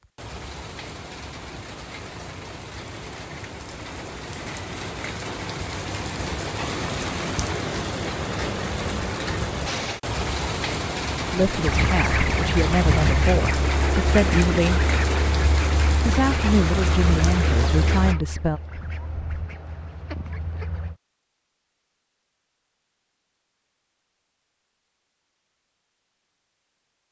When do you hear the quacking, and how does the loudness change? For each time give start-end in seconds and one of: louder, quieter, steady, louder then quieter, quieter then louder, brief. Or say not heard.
11.6-20.9 quieter.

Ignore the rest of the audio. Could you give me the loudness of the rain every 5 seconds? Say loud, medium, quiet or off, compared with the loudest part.
medium, loud, loud, loud, off, off.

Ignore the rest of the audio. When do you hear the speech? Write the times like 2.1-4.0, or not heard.
11.3-14.8, 16.1-18.6.